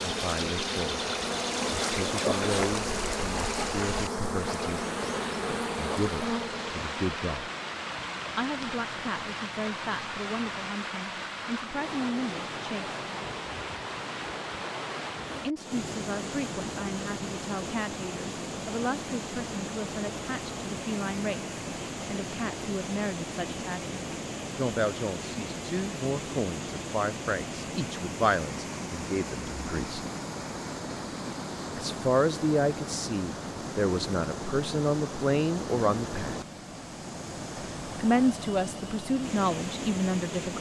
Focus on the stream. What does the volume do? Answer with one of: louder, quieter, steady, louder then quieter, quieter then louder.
steady.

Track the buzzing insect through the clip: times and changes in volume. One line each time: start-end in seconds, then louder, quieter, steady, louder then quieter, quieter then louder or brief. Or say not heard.
0.0-10.5 quieter.